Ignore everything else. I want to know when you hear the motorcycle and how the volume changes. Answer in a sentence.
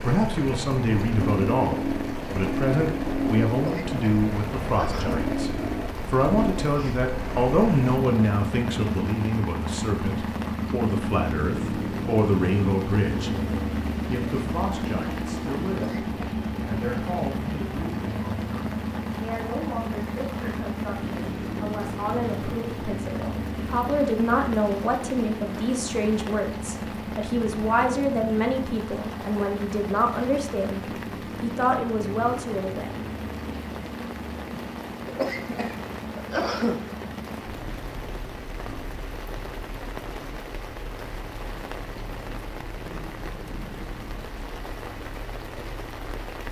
The motorcycle can be heard from 0.0 to 46.4 s, getting quieter.